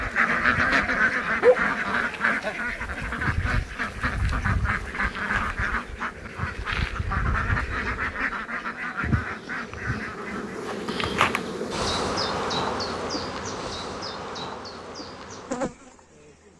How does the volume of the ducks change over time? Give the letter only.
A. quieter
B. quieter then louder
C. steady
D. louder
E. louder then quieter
A.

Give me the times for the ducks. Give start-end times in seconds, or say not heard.
0.0-10.6.